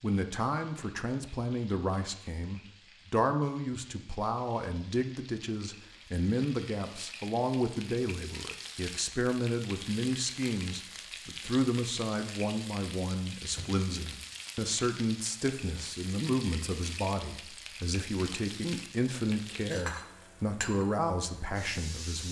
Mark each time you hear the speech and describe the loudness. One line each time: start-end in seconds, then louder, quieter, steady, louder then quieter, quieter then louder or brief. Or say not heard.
0.0-22.2 steady.